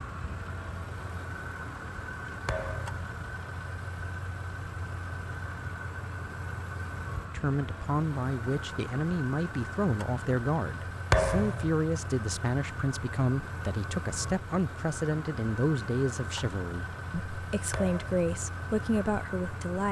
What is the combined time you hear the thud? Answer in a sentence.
You can hear the thud for 2 seconds altogether.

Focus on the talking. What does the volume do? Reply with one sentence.
The volume of the talking stays about the same.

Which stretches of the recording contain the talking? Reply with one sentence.
The talking can be heard from 7.3 to 19.8 s.